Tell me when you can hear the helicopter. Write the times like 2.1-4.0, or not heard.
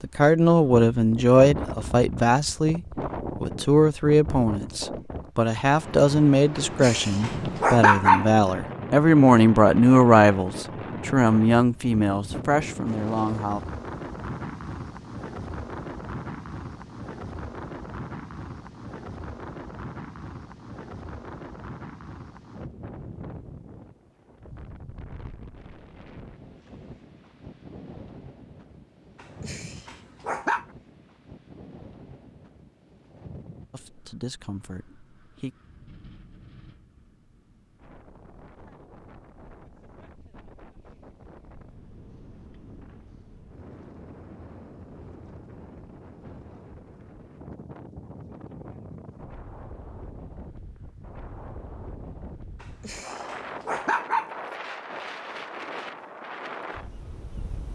not heard.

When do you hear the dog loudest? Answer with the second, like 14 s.
8 s.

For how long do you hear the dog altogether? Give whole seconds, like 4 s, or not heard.
5 s.